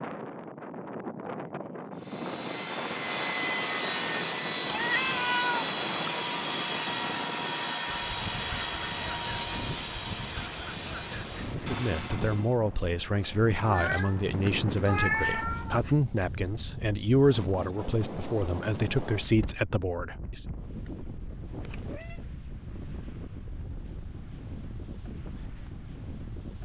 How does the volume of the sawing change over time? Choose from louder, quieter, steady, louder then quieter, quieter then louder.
quieter.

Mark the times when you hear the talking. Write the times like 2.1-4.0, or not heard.
11.6-20.4.